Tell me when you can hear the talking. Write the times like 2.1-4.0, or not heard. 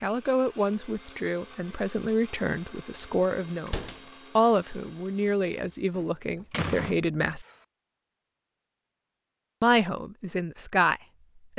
0.0-7.5, 9.6-11.5.